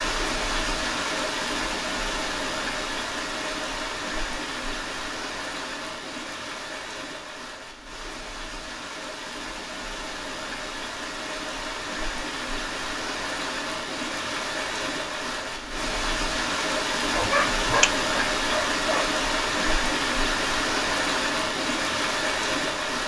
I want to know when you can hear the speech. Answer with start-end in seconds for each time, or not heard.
not heard.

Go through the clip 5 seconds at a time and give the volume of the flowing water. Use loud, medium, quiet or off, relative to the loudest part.
loud, medium, medium, loud, loud.